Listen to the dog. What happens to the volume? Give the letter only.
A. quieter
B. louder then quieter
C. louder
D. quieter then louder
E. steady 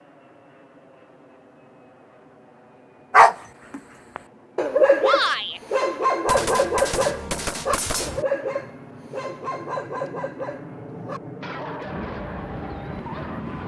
A.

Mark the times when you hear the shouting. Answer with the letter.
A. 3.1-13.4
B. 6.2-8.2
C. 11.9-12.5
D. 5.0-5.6
D.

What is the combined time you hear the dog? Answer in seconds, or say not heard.
10 s.